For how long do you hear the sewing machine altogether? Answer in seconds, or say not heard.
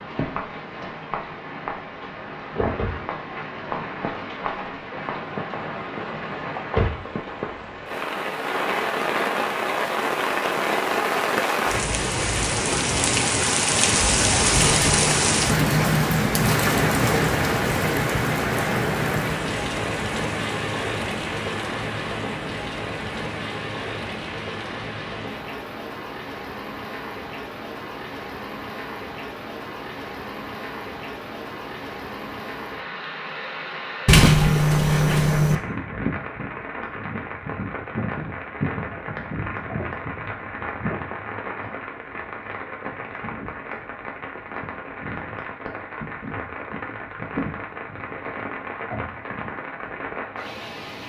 not heard.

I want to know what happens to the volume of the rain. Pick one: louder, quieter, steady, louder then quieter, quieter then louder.
louder then quieter.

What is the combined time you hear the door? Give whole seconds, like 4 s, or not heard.
2 s.